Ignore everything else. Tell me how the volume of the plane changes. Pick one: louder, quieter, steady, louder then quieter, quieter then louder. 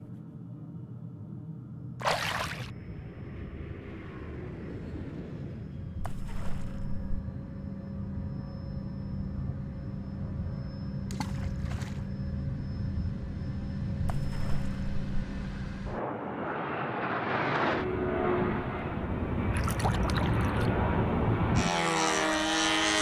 louder.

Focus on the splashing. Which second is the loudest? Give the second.
2 s.